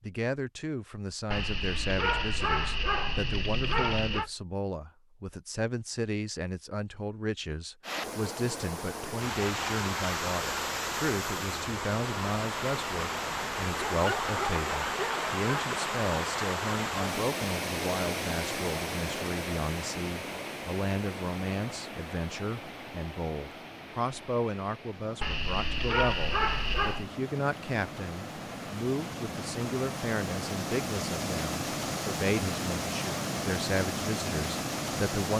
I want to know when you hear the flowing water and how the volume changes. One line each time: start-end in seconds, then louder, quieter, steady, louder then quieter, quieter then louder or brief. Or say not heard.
7.8-35.3 quieter then louder.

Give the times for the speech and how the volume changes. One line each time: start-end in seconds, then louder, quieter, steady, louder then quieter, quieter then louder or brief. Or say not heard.
0.0-35.3 steady.